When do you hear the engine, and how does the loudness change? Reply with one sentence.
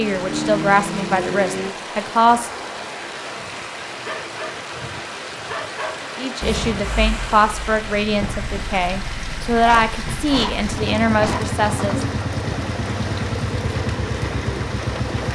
You can hear the engine briefly from 0.0 to 1.7 s; and from 6.4 to 15.3 s, getting louder.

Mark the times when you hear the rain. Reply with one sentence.
You can hear the rain from 0.0 to 15.3 s.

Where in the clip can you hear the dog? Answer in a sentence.
You can hear the dog from 3.2 to 6.1 s and from 9.6 to 11.5 s.